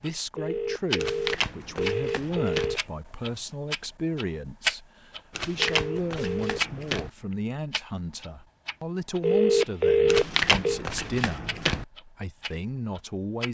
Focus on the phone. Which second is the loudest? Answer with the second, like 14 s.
10 s.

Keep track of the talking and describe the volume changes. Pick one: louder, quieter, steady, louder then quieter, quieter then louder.
steady.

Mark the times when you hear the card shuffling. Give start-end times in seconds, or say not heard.
0.9-2.8, 5.3-7.1, 10.1-11.8.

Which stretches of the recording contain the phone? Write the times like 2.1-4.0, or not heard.
0.3-2.8, 5.5-6.6, 9.2-10.8.